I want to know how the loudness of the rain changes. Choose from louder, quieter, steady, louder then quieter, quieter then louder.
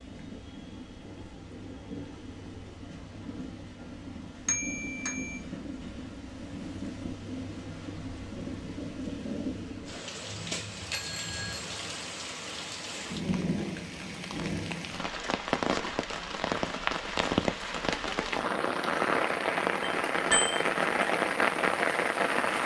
louder.